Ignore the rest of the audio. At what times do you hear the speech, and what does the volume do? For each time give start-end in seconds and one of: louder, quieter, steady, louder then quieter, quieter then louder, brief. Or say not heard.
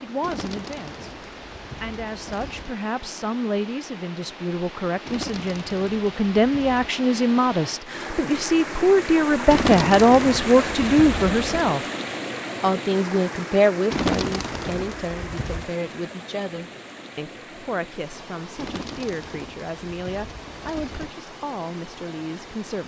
0.0-11.8 louder
12.6-22.8 quieter.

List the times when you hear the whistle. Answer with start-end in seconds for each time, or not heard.
not heard.